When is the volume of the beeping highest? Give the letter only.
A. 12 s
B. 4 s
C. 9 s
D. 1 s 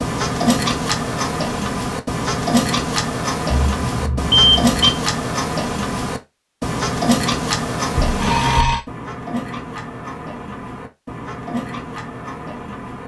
B.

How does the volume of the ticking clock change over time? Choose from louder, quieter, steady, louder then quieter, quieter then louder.
quieter.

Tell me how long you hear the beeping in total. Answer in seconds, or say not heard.
2 s.